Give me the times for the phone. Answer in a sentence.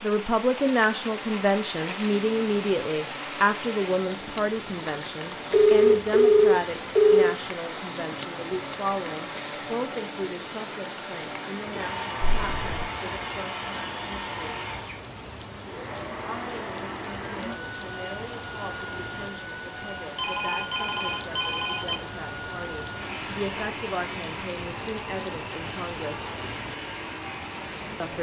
The phone can be heard from 5.5 to 7.3 s, from 12.2 to 12.8 s and from 20.1 to 21.9 s.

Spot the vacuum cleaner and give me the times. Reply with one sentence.
The vacuum cleaner can be heard from 0.0 to 28.1 s.